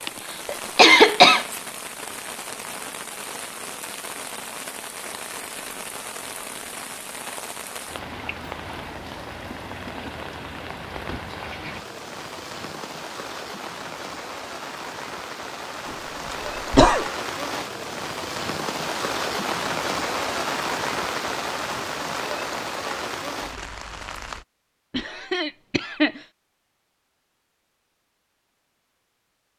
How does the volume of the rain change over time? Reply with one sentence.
The volume of the rain goes up.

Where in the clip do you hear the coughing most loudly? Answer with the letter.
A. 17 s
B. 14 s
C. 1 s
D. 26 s
C.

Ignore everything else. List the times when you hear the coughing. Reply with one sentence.
You can hear the coughing from 0.1 to 1.4 s, from 16.3 to 17.1 s and from 24.9 to 26.2 s.